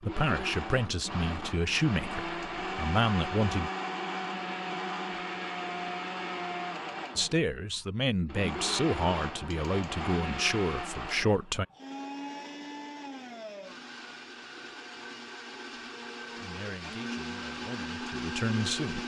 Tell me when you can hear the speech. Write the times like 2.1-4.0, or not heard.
0.0-3.7, 7.2-11.7, 16.4-19.0.